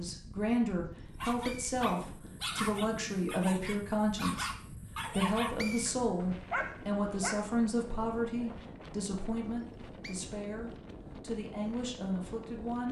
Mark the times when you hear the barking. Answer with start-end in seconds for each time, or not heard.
1.2-7.5.